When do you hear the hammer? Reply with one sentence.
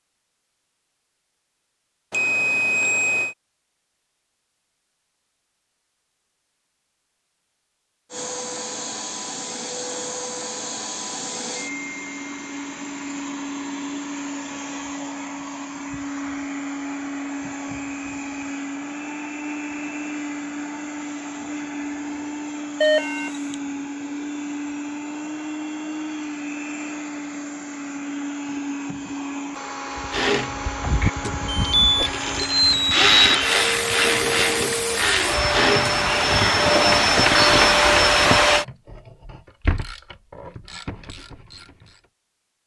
You can't hear the hammer here.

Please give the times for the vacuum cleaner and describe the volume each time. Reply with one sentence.
The vacuum cleaner can be heard from 8.1 to 38.6 s, getting louder.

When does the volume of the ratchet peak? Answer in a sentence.
The volume of the ratchet peaks at 33 seconds.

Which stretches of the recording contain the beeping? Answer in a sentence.
You can hear the beeping from 2.1 to 3.4 s, from 22.8 to 23.6 s and from 31.2 to 33.5 s.